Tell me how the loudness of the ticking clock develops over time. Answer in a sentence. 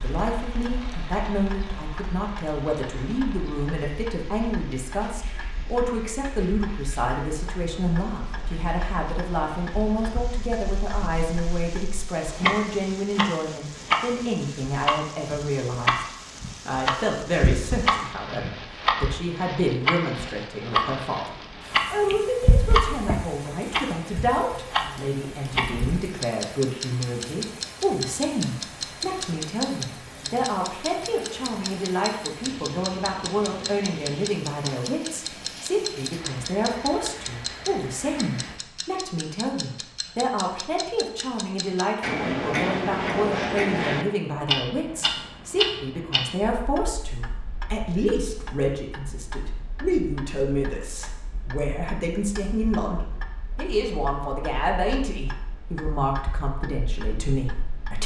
The loudness of the ticking clock goes up, then down.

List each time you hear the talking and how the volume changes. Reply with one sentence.
You can hear the talking from 0.0 to 58.0 s, at a steady volume.